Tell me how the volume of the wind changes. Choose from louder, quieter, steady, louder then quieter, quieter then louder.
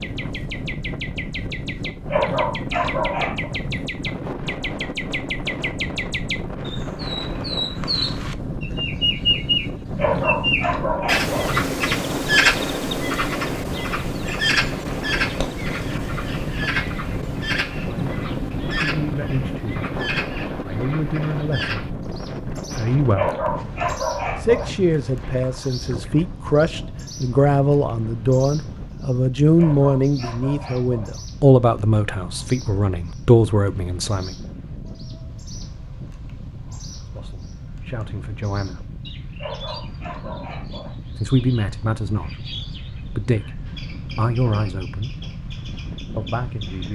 quieter.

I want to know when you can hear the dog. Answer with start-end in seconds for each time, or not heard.
1.9-3.5, 9.8-11.6, 22.9-24.8, 29.6-31.2, 39.2-41.0.